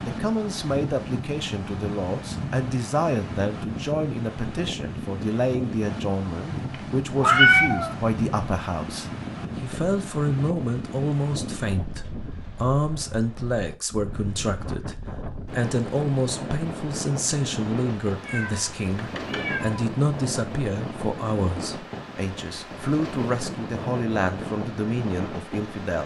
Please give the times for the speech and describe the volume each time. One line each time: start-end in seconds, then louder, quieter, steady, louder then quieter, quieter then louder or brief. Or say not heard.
0.0-26.0 steady.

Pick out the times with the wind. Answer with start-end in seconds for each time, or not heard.
0.0-26.0.